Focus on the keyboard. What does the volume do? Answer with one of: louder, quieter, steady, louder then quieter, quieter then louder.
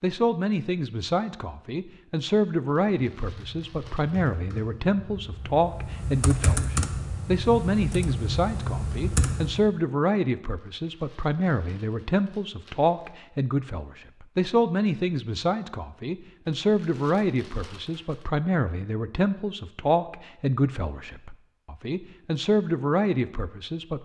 louder.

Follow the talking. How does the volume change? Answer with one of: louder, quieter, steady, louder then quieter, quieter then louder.
steady.